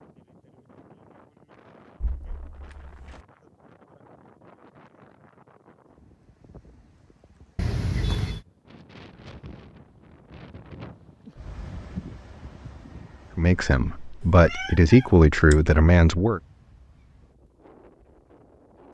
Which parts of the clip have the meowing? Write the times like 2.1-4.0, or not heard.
2.0-3.2, 7.5-8.4, 14.4-15.6.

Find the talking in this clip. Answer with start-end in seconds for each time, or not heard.
13.3-16.4.